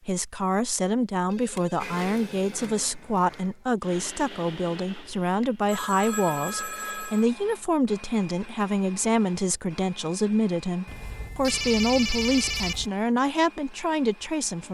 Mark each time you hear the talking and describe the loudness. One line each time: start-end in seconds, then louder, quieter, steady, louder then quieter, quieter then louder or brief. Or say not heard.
0.1-14.6 steady.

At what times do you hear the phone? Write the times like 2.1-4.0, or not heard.
1.2-2.9, 5.4-7.2, 10.8-12.9.